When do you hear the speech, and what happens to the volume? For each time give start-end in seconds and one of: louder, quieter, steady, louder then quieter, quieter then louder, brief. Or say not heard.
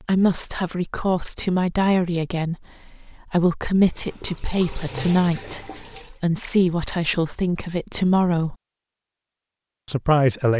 0.1-8.6 steady
9.8-10.5 brief.